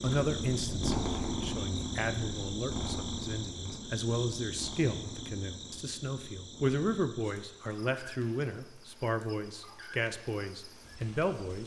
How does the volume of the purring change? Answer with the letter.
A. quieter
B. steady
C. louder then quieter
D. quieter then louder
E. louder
A.